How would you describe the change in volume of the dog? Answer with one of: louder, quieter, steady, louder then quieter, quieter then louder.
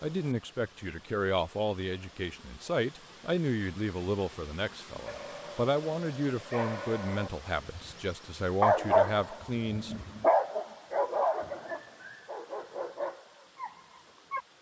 louder then quieter.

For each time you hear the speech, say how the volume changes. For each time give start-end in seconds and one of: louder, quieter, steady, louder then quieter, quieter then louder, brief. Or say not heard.
0.0-9.9 steady.